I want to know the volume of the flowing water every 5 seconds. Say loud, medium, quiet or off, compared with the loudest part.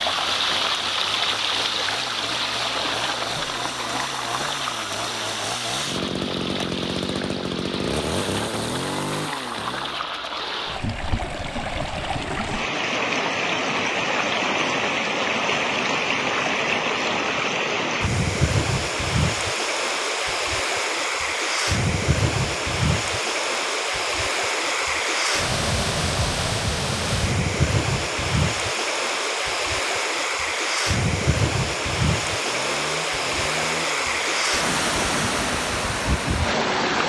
loud, medium, loud, loud, loud, loud, loud, loud.